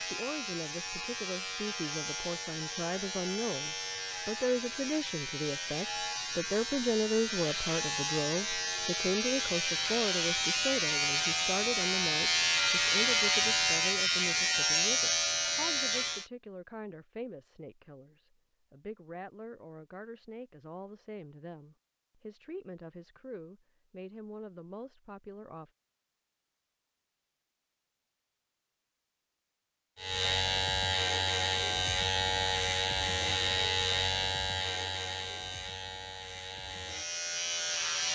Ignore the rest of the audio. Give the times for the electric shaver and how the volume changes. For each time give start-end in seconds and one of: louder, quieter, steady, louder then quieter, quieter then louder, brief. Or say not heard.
0.0-16.3 louder
29.9-38.1 quieter.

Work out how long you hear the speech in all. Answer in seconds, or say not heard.
26 s.